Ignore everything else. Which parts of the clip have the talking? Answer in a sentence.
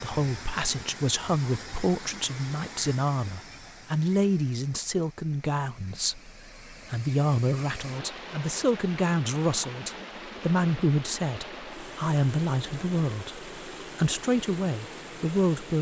The talking can be heard from 0.0 to 15.7 s.